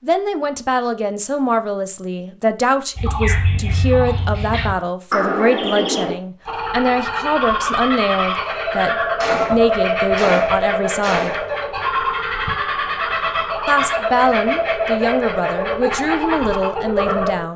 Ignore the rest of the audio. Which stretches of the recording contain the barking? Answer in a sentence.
The barking can't be heard in this clip.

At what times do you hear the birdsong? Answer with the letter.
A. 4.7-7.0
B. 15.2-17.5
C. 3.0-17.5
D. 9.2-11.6
C.